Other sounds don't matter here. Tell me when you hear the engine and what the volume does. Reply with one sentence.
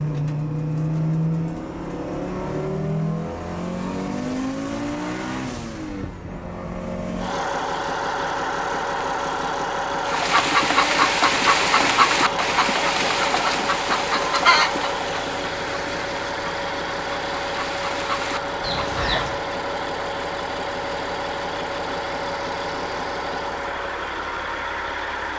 The engine can be heard from 0.0 to 25.3 s, at a steady volume.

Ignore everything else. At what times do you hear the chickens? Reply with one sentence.
The chickens can be heard from 10.1 to 19.4 s.